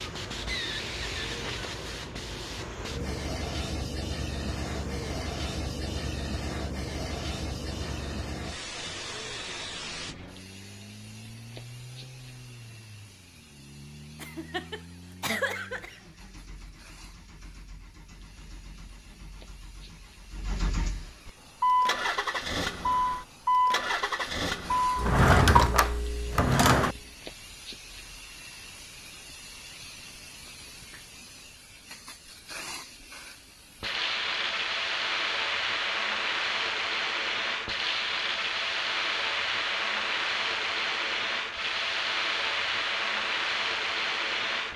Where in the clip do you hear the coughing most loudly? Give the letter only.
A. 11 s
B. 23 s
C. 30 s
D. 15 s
D.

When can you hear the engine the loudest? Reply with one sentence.
The loudest moment of the engine is at 23 seconds.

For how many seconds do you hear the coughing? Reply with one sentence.
You can hear the coughing for 2 seconds altogether.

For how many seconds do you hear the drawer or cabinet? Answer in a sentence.
The drawer or cabinet can be heard for 2 seconds in total.